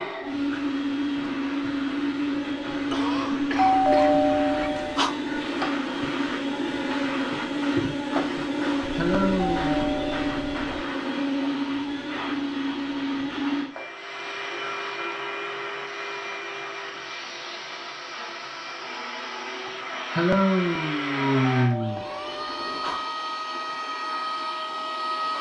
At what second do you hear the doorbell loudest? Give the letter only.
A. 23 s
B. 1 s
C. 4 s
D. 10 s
C.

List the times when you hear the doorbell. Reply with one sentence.
You can hear the doorbell from 3.5 to 5.2 s, from 8.8 to 10.8 s and from 21.6 to 23.1 s.